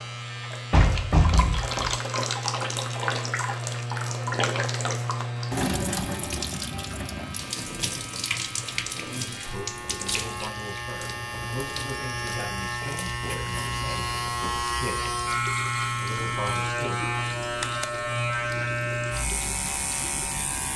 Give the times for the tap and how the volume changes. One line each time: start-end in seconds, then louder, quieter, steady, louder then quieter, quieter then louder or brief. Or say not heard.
0.0-20.7 quieter.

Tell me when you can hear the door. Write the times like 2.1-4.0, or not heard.
0.7-1.9.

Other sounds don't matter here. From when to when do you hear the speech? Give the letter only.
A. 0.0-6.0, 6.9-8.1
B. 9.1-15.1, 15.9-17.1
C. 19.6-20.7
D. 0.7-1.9
B.